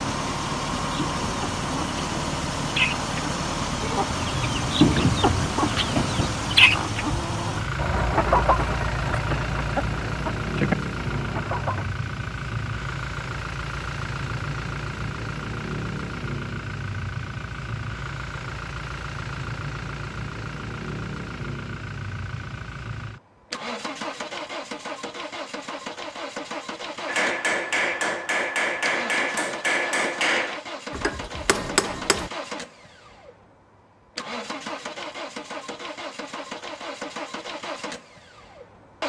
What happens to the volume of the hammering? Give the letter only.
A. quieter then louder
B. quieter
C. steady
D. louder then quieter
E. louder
C.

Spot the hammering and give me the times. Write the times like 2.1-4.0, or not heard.
27.1-32.3.